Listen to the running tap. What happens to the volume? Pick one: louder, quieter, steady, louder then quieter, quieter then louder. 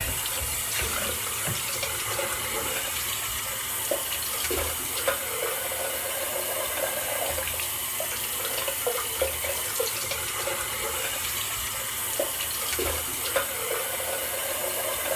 steady.